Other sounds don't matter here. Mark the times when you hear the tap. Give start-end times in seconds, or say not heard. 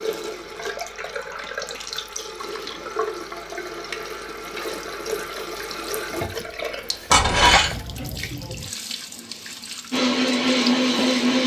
0.0-11.2.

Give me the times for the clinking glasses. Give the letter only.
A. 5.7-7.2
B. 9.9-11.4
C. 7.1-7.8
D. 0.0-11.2
C.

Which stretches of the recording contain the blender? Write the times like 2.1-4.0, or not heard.
9.9-11.4.